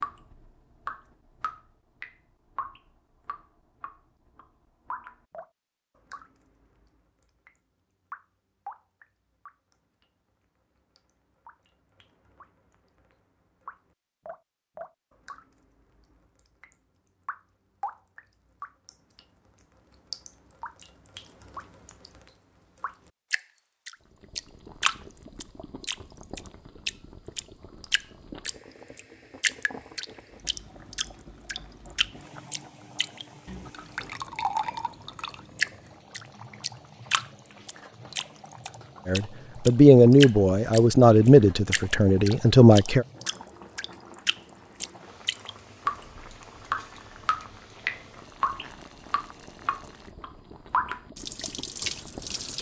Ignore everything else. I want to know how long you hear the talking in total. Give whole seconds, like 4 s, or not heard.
4 s.